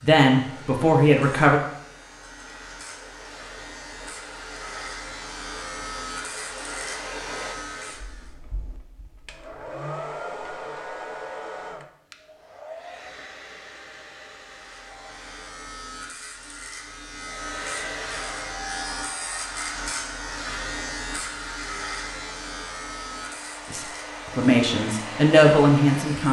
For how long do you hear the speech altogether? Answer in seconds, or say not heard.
4 s.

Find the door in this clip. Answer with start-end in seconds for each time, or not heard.
not heard.